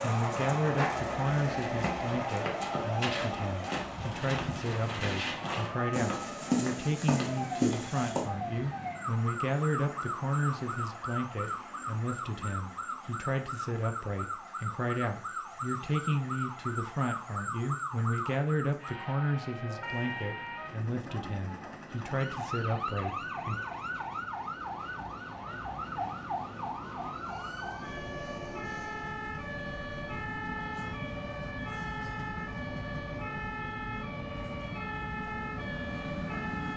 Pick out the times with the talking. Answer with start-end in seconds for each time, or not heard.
0.0-23.6.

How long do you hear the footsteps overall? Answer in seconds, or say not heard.
8 s.